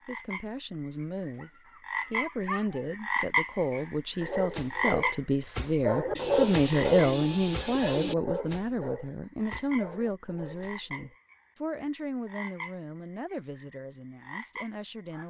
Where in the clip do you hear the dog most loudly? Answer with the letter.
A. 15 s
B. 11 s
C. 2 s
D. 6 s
D.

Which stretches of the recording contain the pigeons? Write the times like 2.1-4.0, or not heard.
6.2-8.2.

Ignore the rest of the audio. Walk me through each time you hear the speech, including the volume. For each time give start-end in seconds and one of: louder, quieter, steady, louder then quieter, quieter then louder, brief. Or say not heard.
0.1-15.2 louder then quieter.